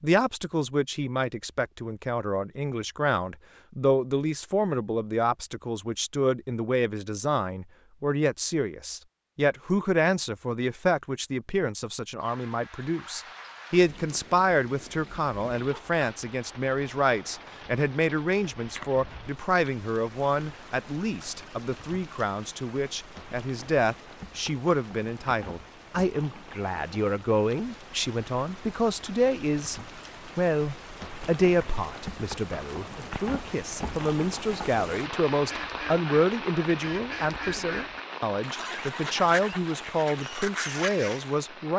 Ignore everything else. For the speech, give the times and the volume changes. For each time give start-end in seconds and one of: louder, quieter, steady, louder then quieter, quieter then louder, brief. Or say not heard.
0.0-41.7 steady.